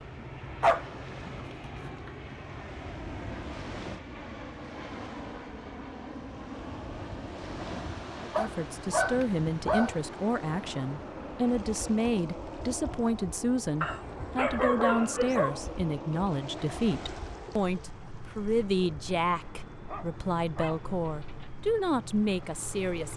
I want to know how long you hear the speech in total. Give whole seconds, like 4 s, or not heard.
15 s.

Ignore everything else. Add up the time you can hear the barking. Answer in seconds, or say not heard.
7 s.